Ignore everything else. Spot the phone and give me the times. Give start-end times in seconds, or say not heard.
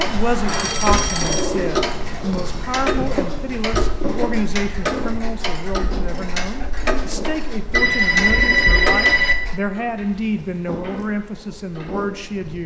0.5-1.5, 7.7-9.3.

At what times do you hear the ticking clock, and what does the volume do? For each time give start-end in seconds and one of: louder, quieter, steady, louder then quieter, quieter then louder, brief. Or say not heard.
0.0-12.6 quieter.